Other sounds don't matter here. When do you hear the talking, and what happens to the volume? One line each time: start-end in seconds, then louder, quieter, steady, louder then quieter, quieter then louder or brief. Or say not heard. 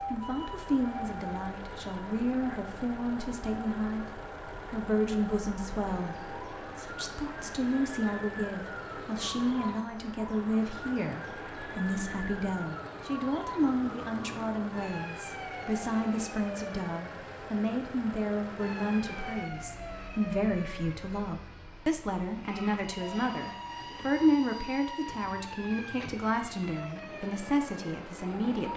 0.1-28.7 steady.